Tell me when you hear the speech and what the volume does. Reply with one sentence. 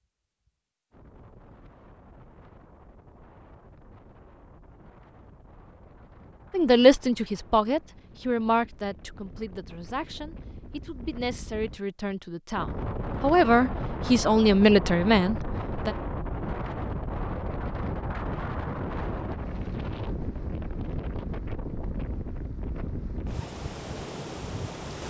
You can hear the speech from 6.5 to 15.9 s, getting quieter then louder.